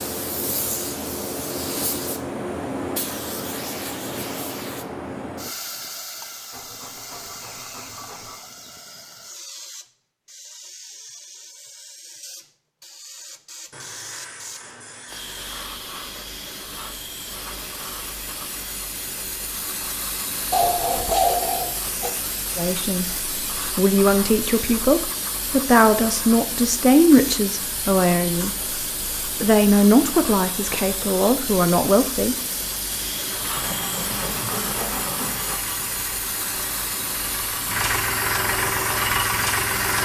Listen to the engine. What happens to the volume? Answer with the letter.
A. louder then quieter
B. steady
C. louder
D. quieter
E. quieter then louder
C.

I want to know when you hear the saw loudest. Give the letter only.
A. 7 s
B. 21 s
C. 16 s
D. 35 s
B.